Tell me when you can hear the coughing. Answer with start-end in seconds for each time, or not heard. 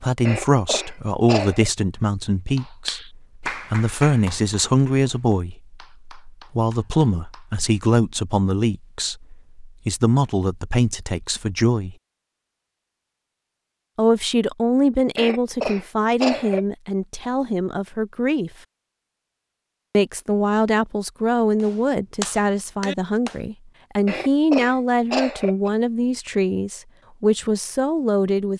0.2-1.7, 15.2-16.6, 24.1-25.7.